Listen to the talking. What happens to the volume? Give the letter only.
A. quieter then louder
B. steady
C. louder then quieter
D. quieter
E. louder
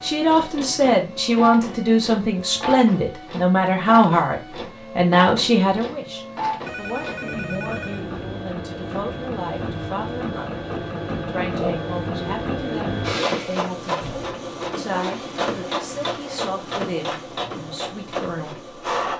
D.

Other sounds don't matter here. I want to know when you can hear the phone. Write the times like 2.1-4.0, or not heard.
6.7-8.1.